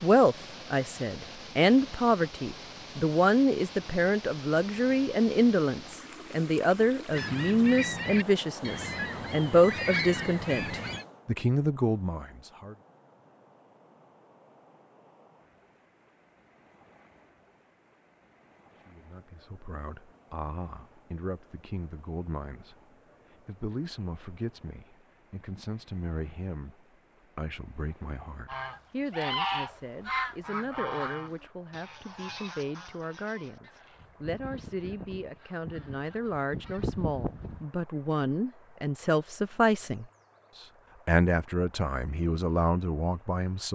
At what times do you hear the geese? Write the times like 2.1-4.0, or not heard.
7.1-11.1, 28.4-37.6.